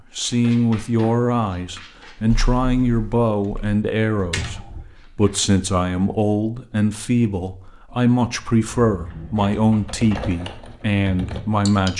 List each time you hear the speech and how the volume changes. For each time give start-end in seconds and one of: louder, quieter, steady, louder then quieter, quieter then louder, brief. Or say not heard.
0.1-11.9 steady.